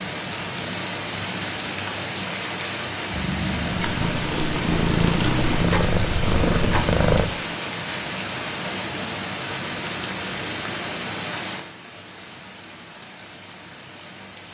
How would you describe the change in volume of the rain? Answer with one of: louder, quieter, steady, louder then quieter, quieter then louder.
quieter.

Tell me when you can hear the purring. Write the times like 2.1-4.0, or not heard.
3.1-7.2.